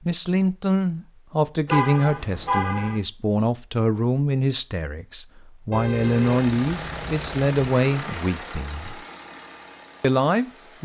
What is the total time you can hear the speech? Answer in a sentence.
You can hear the speech for 10 seconds altogether.